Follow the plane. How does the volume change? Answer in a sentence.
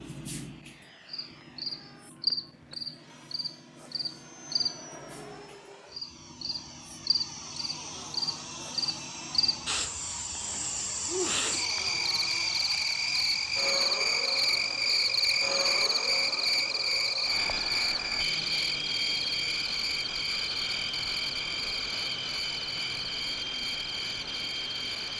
The loudness of the plane goes up.